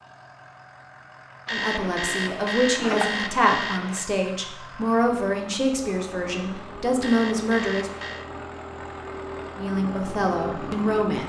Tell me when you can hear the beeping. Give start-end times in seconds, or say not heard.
1.4-4.1, 7.0-8.2.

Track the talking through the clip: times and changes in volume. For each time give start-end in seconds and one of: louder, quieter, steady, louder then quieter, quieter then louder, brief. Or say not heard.
1.5-7.9 steady
9.6-11.2 brief.